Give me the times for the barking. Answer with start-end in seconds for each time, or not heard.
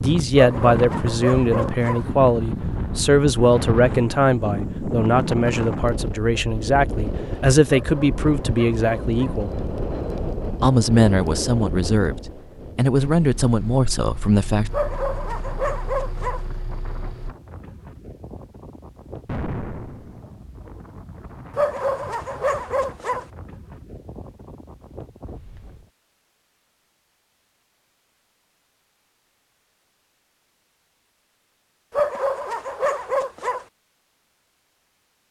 0.3-2.0, 7.7-9.4, 14.7-16.4, 21.6-23.2, 31.9-33.6.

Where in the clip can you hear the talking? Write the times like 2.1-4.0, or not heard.
0.0-9.6, 10.6-14.7.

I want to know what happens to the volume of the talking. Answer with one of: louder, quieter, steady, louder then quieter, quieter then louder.
steady.